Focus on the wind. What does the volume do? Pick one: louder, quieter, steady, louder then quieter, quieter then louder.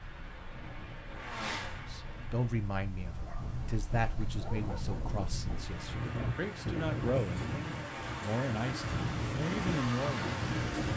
louder.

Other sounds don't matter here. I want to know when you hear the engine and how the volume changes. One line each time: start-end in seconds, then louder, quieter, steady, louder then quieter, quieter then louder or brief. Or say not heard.
0.0-2.6 brief
5.2-10.9 louder.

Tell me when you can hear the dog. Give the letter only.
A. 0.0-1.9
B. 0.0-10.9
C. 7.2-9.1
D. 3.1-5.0
D.